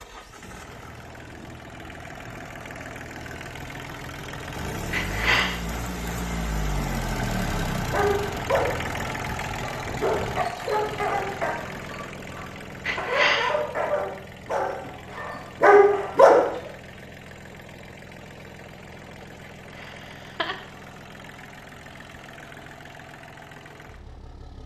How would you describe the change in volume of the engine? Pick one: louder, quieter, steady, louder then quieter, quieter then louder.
louder then quieter.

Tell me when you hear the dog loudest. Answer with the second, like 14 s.
16 s.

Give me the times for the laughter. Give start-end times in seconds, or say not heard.
4.9-5.6, 12.8-13.6, 19.8-20.6.